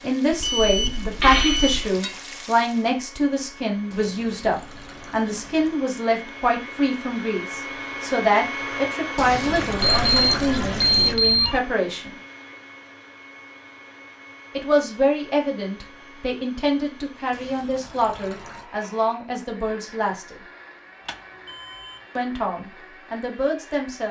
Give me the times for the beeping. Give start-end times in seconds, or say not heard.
0.3-1.9, 9.8-11.6, 21.1-22.0.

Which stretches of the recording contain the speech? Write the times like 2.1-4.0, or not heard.
0.0-12.2, 14.6-20.4, 22.1-24.0.